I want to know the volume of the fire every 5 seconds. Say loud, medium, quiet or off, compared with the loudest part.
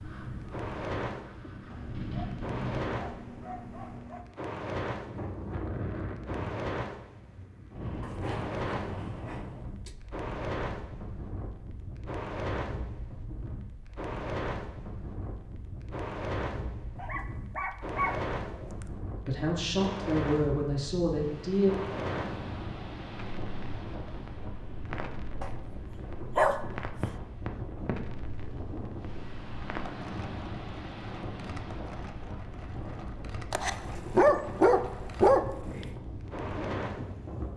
loud, loud, loud, loud, loud, medium, medium, loud.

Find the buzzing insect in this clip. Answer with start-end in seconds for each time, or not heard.
not heard.